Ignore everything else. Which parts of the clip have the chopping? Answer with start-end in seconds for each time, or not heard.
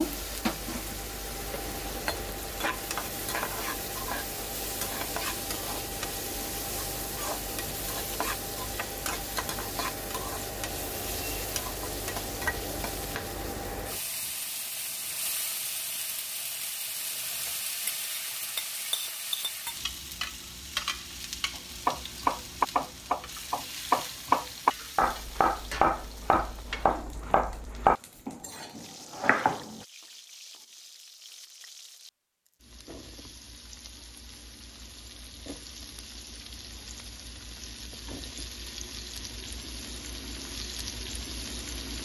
21.5-29.6.